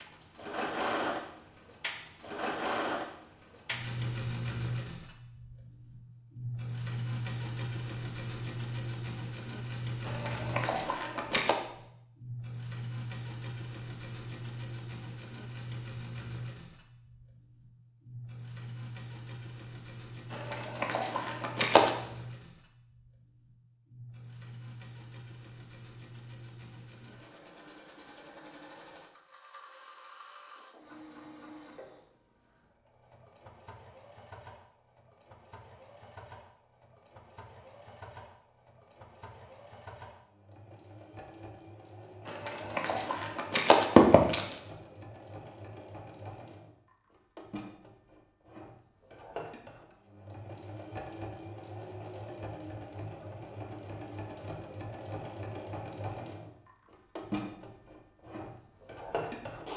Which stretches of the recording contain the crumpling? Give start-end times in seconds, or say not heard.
10.1-11.6, 20.3-21.9, 42.2-44.5.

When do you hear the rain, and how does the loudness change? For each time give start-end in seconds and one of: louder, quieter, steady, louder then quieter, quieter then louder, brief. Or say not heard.
not heard.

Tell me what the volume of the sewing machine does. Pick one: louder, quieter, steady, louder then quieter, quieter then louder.
quieter then louder.